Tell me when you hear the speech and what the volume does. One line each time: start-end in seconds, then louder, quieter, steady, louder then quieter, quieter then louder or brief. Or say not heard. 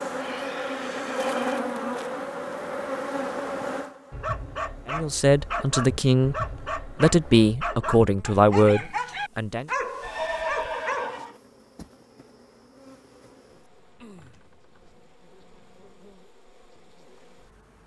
4.8-9.7 steady.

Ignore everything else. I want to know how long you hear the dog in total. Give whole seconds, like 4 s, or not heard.
7 s.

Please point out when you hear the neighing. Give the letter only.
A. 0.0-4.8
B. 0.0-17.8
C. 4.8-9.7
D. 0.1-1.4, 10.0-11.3
D.